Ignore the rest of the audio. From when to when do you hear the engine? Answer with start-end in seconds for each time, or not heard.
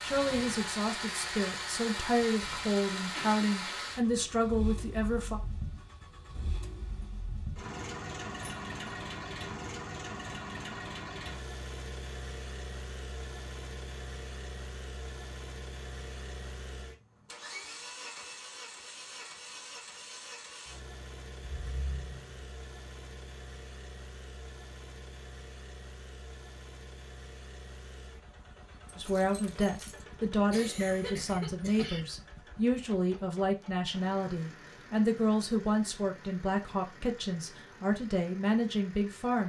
0.0-39.4.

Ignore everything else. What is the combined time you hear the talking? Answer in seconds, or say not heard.
16 s.